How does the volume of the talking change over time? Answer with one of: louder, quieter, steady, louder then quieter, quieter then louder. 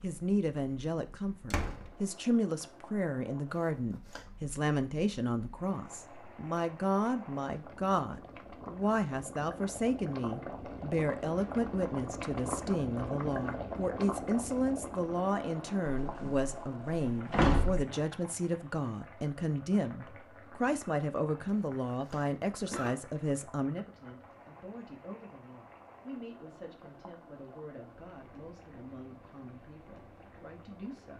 quieter.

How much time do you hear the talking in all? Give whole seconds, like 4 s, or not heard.
31 s.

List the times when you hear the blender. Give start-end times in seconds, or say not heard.
not heard.